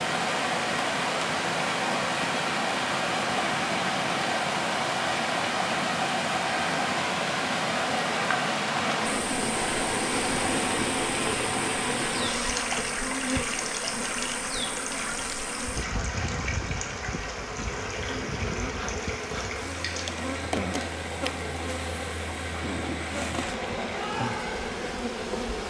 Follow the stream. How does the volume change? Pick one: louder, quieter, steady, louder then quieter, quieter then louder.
quieter.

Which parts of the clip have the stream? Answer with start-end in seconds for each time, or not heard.
0.0-25.6.